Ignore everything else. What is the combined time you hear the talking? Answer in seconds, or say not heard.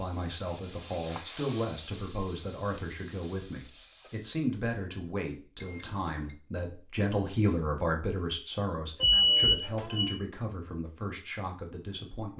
12 s.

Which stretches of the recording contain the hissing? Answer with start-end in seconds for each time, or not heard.
0.0-4.2.